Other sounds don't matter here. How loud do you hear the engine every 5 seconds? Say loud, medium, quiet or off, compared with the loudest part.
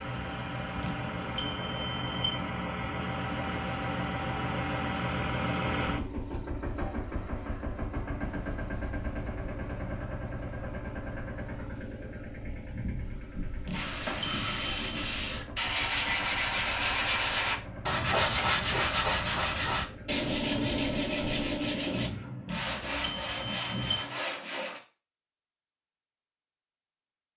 loud, loud, medium, medium, medium, off.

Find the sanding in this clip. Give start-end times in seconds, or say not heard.
13.7-24.8.